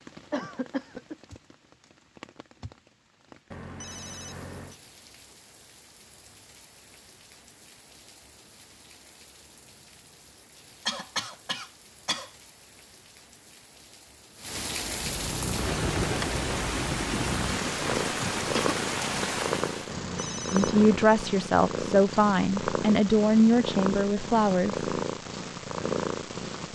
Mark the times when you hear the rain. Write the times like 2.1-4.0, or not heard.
0.0-19.9.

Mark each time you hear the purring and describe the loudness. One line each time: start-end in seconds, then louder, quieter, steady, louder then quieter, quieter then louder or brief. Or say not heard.
14.8-26.6 steady.